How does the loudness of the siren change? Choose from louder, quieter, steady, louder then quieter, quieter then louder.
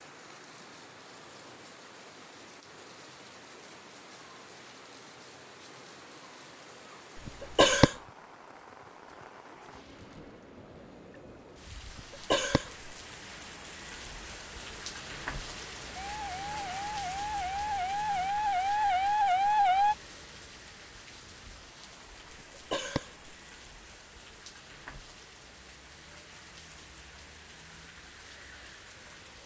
louder.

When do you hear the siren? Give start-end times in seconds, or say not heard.
15.9-19.9.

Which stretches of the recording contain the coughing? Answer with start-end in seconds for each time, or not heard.
7.2-8.0, 11.9-12.9, 22.6-23.3.